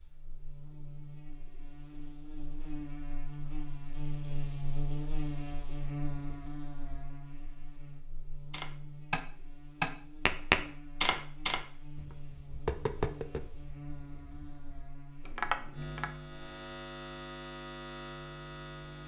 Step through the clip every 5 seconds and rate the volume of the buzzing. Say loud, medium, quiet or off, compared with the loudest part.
loud, loud, medium, loud.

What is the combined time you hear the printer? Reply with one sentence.
You can't hear the printer here.